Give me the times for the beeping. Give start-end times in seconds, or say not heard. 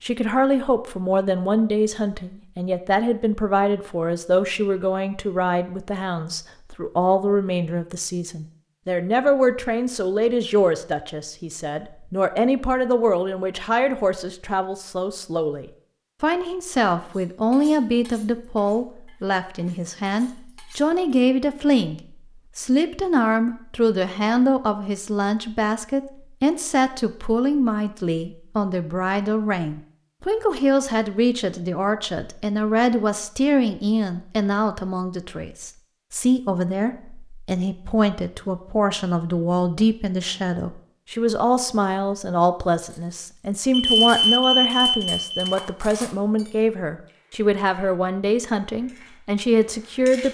43.7-45.5.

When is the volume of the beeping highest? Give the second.
44 s.